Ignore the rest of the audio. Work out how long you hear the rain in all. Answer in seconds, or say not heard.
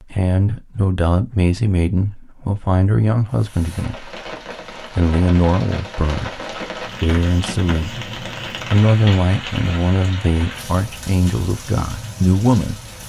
10 s.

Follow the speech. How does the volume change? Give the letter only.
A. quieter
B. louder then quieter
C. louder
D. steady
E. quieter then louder
D.